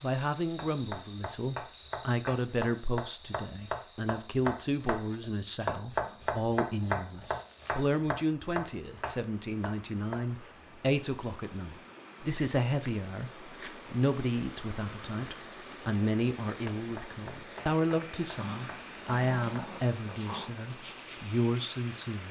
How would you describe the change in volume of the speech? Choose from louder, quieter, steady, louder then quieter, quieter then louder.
steady.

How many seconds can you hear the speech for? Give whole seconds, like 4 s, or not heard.
22 s.